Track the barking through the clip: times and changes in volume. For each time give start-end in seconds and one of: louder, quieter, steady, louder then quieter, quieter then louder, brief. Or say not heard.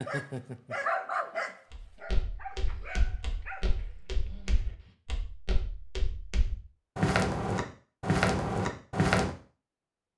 0.0-5.0 quieter.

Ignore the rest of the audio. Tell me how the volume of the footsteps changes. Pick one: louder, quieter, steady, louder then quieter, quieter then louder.
louder.